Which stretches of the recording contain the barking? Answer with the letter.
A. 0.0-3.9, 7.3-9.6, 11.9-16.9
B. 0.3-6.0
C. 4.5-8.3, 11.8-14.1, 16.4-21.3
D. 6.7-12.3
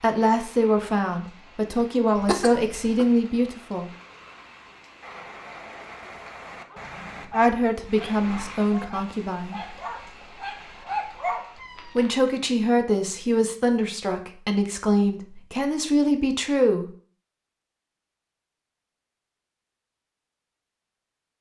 D.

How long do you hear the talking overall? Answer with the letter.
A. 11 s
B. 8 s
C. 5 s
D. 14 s
A.